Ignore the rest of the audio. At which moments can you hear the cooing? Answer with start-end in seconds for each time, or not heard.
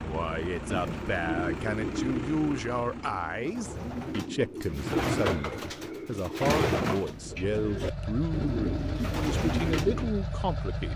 0.7-10.1.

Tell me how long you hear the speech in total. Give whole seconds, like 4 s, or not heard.
11 s.